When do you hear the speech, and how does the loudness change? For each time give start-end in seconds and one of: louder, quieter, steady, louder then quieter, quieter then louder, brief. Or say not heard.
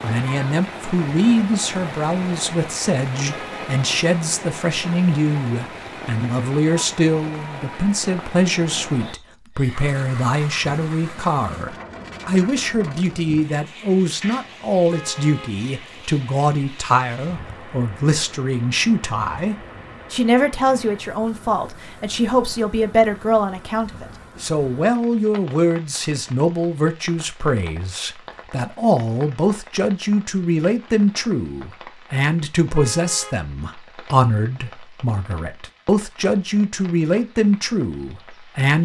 0.0-38.8 steady.